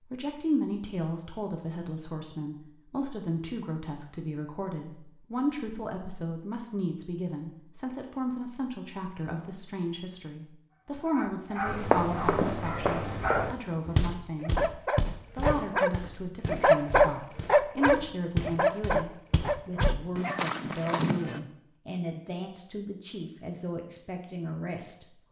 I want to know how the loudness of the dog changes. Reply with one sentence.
The volume of the dog goes up, then down.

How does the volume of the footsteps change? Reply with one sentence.
The volume of the footsteps goes down, then up.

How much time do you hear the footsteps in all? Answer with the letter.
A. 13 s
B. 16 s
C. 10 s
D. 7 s
C.